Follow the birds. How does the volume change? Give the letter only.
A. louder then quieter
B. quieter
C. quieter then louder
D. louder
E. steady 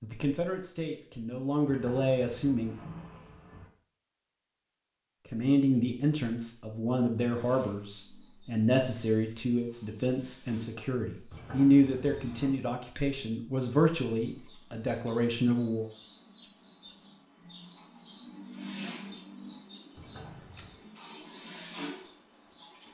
D.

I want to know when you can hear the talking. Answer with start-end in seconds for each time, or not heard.
0.0-2.8, 5.2-15.8.